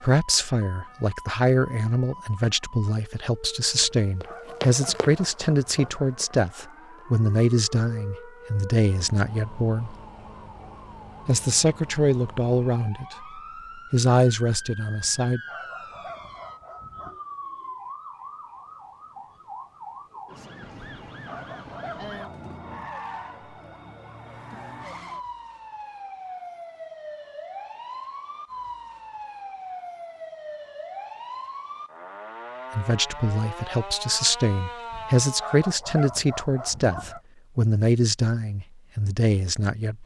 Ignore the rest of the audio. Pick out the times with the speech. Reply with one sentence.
The speech can be heard from 0.0 to 9.9 s, from 11.2 to 15.4 s and from 32.8 to 40.0 s.